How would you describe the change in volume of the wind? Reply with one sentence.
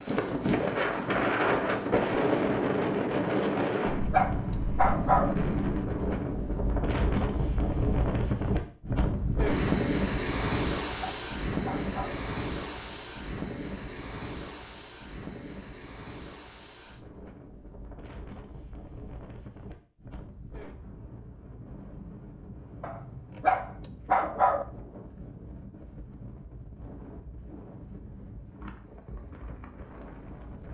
The volume of the wind goes down.